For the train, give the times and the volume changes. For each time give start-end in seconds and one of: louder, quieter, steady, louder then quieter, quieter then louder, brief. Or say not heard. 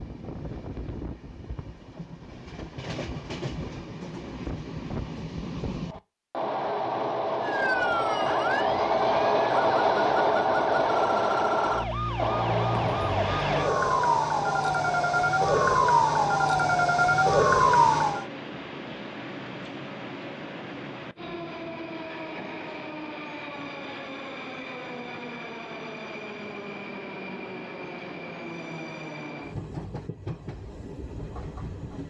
0.0-32.0 louder then quieter.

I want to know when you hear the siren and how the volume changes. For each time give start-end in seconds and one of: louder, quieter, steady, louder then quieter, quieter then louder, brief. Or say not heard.
7.4-18.2 louder.